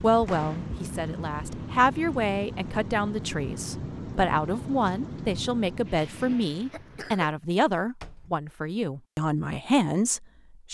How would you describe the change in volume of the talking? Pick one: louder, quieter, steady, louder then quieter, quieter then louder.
steady.